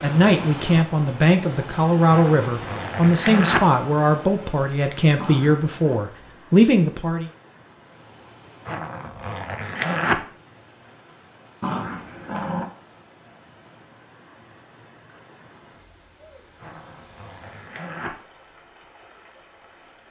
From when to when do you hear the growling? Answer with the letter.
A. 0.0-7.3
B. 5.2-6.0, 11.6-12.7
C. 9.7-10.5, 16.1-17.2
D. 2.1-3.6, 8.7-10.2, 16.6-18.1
B.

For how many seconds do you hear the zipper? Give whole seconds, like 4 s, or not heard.
5 s.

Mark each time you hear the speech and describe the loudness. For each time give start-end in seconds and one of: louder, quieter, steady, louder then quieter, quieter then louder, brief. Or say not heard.
0.0-7.3 steady.